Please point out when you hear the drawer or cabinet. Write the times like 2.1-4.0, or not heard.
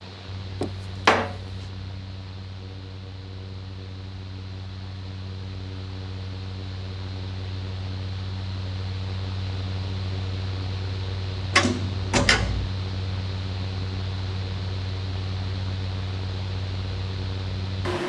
0.6-1.4, 11.5-12.7.